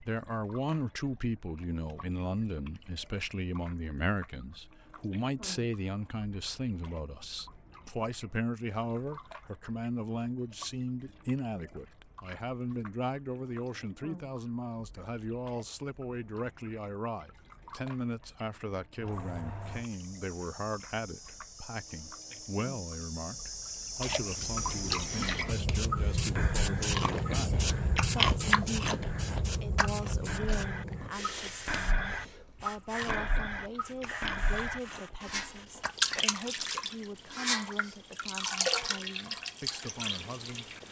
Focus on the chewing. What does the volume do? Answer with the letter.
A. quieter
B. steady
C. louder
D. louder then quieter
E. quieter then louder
D.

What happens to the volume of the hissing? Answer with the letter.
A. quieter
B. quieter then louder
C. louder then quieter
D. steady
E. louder
C.